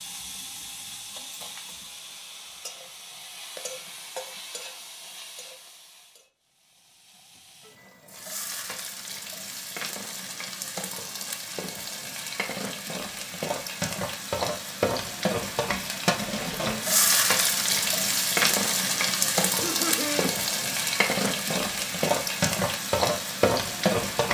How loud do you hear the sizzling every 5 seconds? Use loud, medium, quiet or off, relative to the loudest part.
quiet, quiet, medium, loud, loud.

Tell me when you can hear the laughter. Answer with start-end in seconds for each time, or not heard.
19.5-20.3.